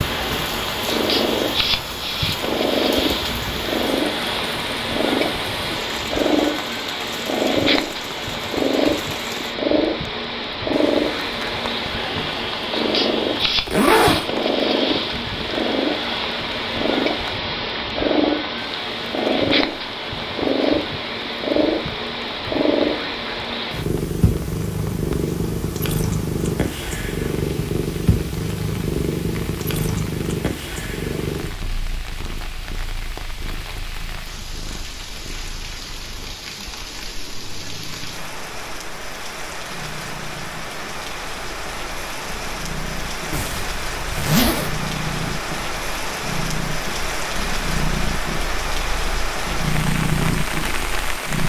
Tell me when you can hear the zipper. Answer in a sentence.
The zipper can be heard from 13.4 to 14.3 s and from 43.3 to 44.9 s.